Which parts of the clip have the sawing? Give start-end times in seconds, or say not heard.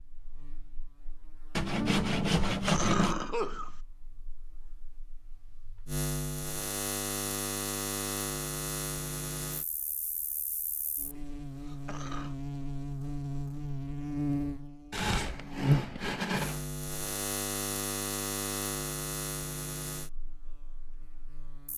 1.6-3.1, 14.9-16.6.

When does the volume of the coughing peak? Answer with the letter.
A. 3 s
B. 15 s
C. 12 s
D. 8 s
A.